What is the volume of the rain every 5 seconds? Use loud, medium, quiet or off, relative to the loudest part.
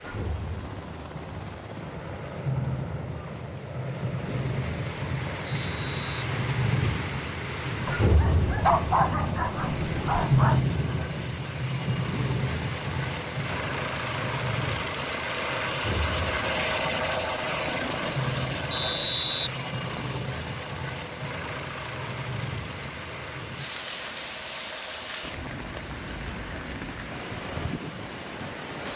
medium, loud, loud, medium, medium, medium.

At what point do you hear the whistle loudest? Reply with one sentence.
The loudest moment of the whistle is at 19 seconds.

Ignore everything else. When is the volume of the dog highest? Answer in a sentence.
The volume of the dog peaks at 9 seconds.